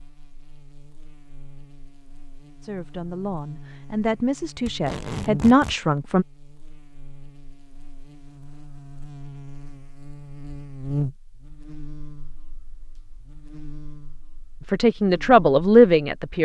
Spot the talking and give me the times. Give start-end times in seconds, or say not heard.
2.6-6.2, 14.7-16.4.